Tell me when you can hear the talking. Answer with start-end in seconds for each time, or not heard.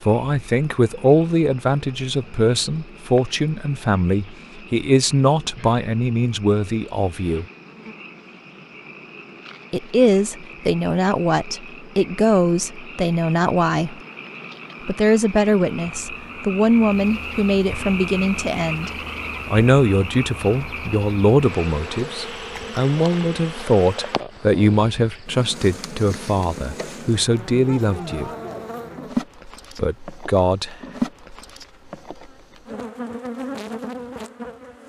0.0-7.5, 9.7-13.9, 14.8-28.3, 29.8-30.8.